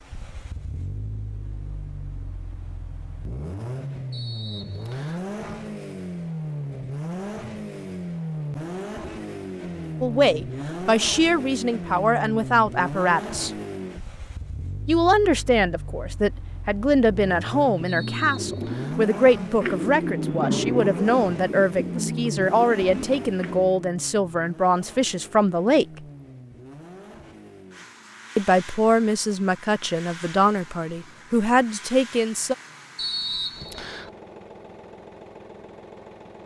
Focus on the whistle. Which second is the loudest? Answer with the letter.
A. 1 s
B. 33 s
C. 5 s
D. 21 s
B.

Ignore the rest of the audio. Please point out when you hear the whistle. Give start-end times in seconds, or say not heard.
4.1-5.2, 17.9-19.0, 33.0-34.1.